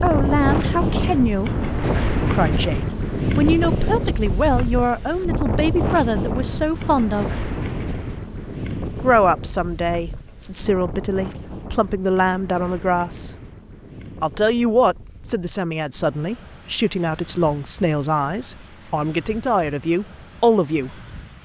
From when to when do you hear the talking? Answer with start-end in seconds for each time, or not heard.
0.0-7.4, 9.0-13.3, 14.2-20.9.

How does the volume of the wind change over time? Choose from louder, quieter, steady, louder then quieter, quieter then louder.
quieter.